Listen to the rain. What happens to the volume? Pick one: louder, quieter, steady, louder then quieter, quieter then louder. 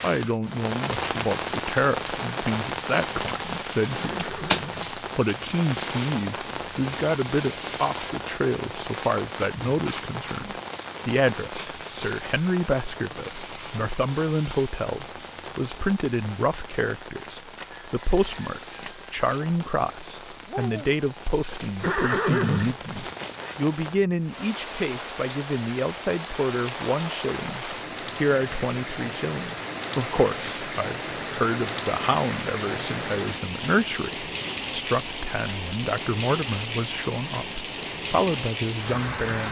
quieter then louder.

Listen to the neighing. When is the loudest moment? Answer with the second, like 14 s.
22 s.